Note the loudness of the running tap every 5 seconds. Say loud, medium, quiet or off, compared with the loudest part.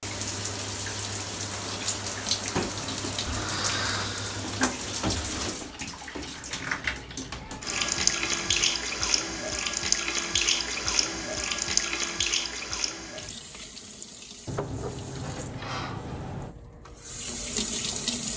loud, loud, loud, medium.